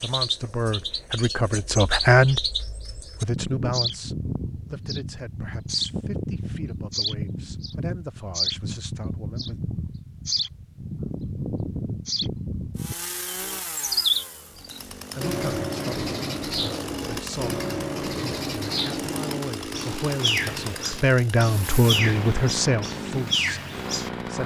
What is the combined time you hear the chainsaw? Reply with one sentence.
You can hear the chainsaw for 12 seconds altogether.